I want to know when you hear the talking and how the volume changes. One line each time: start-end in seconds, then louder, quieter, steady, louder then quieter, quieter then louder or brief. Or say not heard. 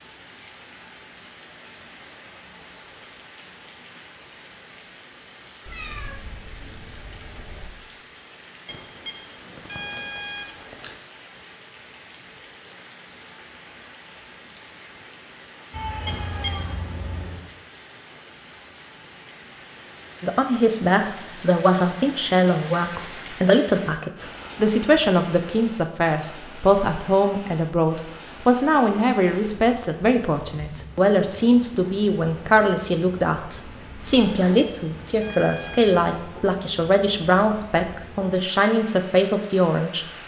20.2-40.0 steady.